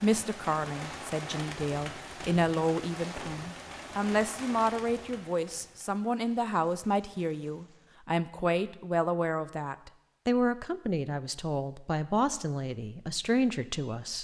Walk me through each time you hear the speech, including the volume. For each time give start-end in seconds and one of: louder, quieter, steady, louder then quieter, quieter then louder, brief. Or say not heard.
0.0-14.1 steady.